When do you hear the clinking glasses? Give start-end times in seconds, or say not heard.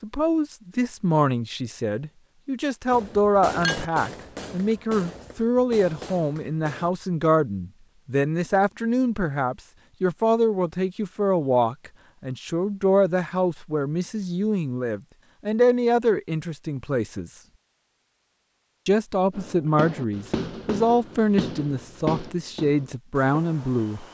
3.6-4.8.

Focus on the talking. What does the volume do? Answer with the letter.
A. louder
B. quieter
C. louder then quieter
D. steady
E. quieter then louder
D.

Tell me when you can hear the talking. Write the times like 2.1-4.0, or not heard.
0.0-17.3, 18.9-24.0.